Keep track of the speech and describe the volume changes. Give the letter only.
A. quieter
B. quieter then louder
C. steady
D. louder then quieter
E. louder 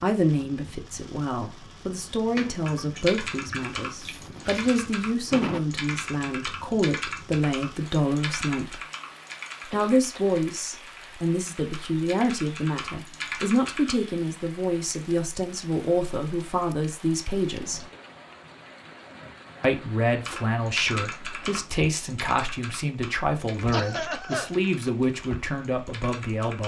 C.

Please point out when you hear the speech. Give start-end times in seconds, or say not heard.
0.0-8.8, 9.7-17.9, 19.6-26.6.